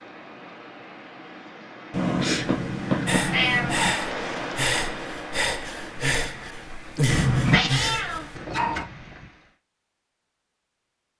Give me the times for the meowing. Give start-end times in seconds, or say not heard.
1.9-4.0, 7.0-8.8.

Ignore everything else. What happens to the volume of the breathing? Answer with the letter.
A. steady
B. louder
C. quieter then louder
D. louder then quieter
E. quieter
A.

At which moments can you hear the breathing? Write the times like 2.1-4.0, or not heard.
3.0-8.3.